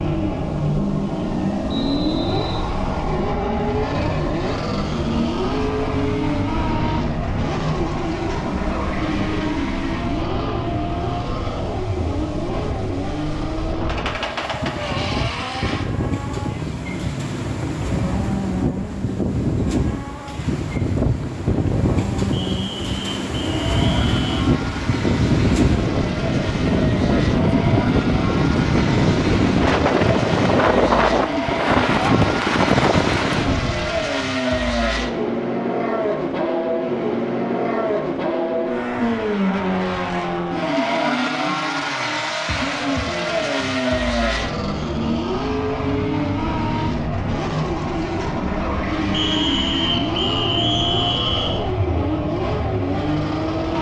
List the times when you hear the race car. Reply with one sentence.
You can hear the race car from 0.0 to 53.7 s.